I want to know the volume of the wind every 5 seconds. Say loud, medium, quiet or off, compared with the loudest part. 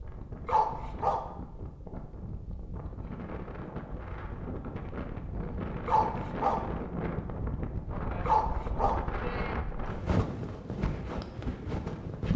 medium, loud, loud.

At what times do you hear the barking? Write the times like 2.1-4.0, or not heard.
0.5-1.2, 5.8-6.6, 8.2-9.0.